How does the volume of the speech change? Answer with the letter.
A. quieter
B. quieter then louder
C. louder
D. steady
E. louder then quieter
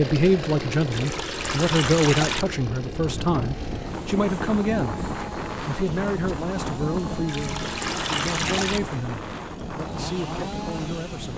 A.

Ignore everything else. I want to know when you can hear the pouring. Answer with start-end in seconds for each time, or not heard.
0.9-2.5, 7.2-8.8.